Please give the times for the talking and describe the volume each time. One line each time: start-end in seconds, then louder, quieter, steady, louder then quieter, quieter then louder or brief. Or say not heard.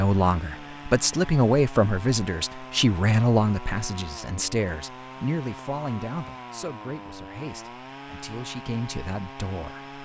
0.0-9.8 quieter.